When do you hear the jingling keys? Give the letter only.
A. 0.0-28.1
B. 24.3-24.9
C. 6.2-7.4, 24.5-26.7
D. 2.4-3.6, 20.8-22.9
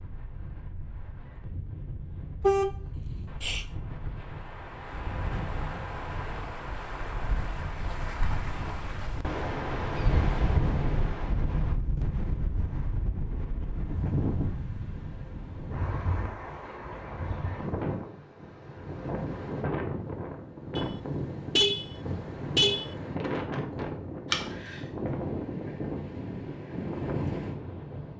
B.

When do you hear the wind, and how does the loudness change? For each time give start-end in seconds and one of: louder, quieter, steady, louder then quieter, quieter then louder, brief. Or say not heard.
0.0-28.1 louder.